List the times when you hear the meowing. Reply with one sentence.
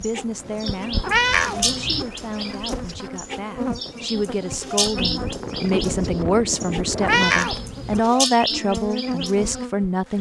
You can hear the meowing from 1.0 to 2.0 s and from 7.0 to 8.0 s.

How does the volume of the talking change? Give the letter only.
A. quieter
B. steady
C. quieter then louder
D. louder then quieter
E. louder
E.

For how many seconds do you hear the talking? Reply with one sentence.
You can hear the talking for 10 seconds altogether.